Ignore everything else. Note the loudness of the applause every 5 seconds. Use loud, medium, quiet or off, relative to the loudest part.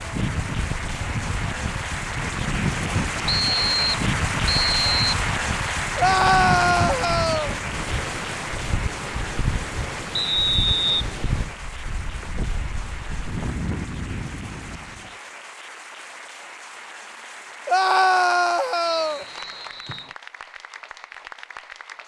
loud, loud, medium, medium, medium.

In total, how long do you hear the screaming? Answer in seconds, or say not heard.
3 s.